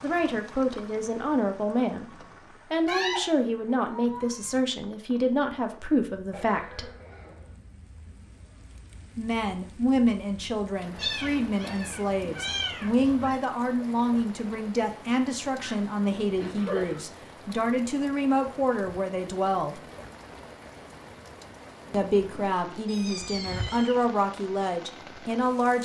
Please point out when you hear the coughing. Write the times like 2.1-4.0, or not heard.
6.3-7.5, 15.6-17.1.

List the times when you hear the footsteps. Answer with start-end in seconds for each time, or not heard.
not heard.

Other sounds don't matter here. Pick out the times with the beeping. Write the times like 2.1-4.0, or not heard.
not heard.